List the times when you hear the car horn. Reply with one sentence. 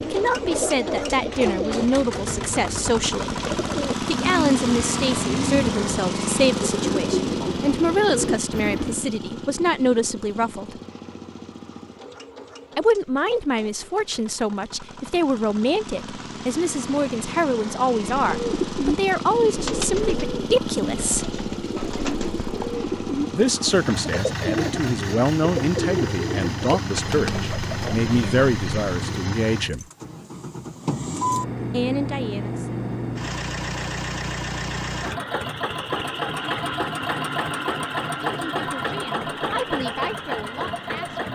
You can't hear the car horn here.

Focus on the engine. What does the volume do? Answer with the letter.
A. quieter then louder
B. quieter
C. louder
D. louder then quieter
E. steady
A.